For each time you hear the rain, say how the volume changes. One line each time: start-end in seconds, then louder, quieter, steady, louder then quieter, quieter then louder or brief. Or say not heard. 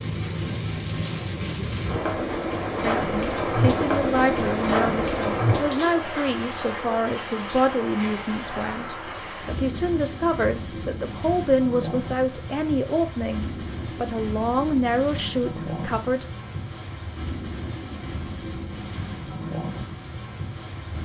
0.0-21.0 quieter.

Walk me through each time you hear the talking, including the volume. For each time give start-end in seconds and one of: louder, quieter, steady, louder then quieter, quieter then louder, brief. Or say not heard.
2.8-16.2 steady.